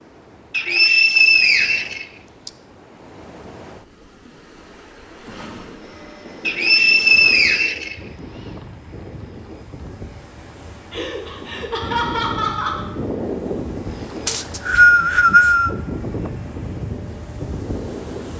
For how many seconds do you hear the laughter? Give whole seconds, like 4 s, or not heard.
2 s.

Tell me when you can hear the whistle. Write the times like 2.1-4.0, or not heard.
0.5-2.5, 6.5-8.0, 14.2-15.7.